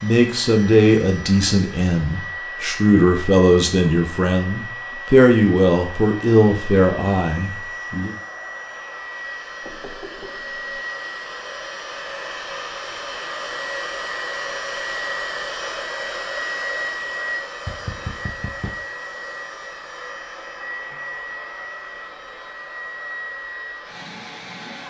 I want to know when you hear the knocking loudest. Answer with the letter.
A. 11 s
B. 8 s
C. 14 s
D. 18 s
D.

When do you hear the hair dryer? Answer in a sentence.
You can hear the hair dryer from 0.0 to 24.8 s.